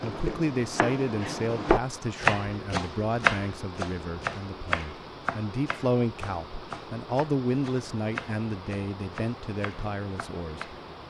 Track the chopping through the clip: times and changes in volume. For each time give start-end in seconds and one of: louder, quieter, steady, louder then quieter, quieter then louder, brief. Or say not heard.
0.0-10.8 quieter.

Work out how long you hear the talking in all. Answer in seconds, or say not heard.
11 s.